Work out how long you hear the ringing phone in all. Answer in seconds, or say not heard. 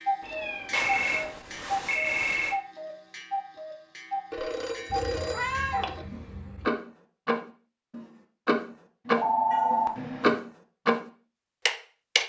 5 s.